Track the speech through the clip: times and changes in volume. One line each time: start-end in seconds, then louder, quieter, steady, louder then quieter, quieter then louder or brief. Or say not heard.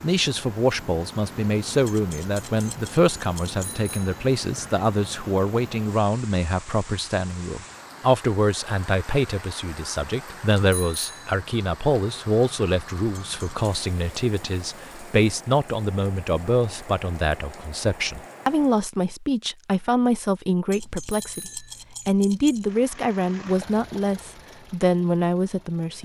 0.0-26.0 steady.